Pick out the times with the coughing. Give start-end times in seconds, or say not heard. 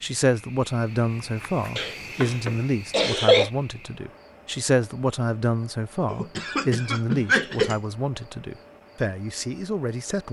1.8-3.5, 6.1-7.8.